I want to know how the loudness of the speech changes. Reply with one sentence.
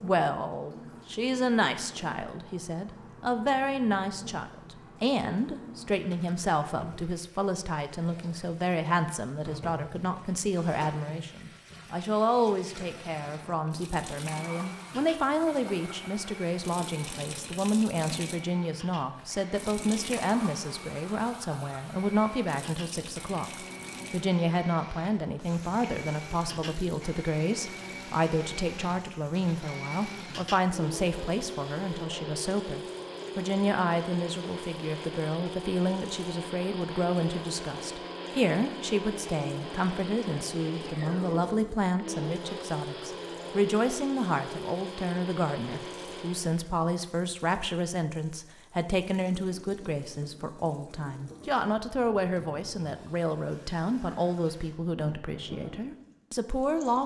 The volume of the speech stays about the same.